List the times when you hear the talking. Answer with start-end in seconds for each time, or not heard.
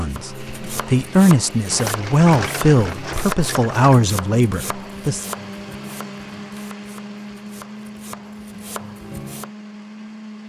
0.0-5.2.